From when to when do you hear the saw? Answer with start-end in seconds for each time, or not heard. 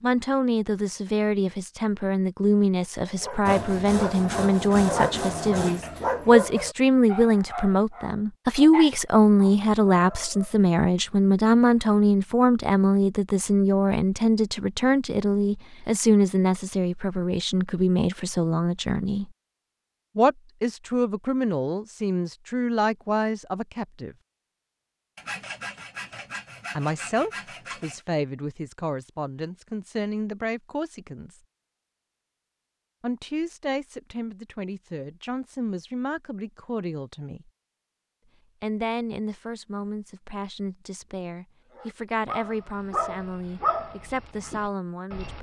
3.5-5.8, 25.1-28.1.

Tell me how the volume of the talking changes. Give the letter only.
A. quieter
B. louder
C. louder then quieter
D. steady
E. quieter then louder
A.